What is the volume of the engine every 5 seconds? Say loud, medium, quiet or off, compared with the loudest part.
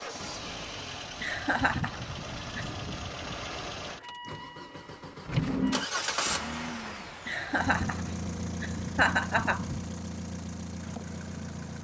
medium, loud, medium.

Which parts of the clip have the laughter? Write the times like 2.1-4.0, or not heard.
1.2-2.8, 7.2-9.8.